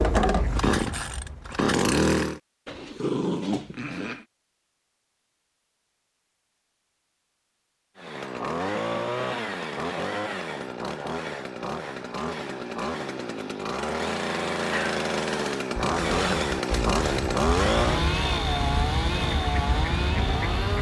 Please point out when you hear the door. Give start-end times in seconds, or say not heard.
not heard.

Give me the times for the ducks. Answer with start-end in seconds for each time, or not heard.
0.0-1.6, 15.8-20.7.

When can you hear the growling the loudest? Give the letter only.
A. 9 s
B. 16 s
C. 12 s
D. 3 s
D.